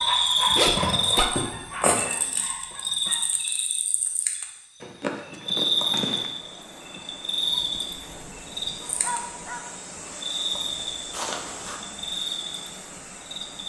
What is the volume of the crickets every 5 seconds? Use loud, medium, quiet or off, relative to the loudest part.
loud, loud, medium.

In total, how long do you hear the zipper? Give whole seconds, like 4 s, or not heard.
3 s.